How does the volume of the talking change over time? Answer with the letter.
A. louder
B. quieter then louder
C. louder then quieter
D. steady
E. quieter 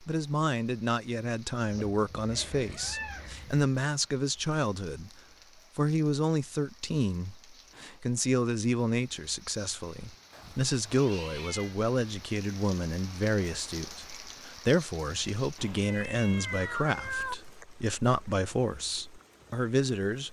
D.